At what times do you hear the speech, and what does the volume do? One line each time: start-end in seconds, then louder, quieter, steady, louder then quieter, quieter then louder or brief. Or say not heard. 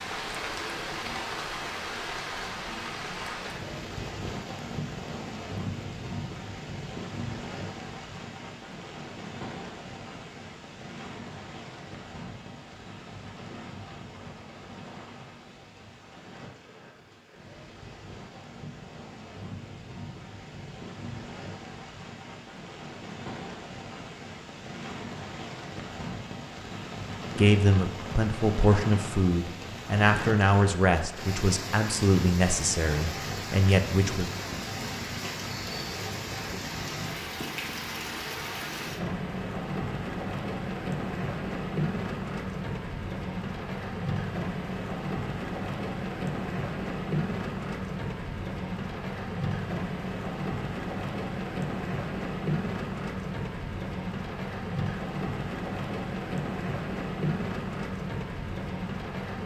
27.4-34.3 steady.